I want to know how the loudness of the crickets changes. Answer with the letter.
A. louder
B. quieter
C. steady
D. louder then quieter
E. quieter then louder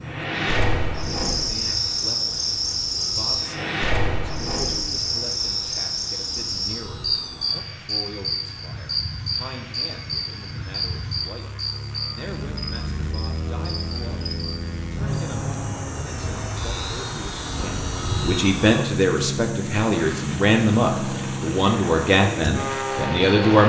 B.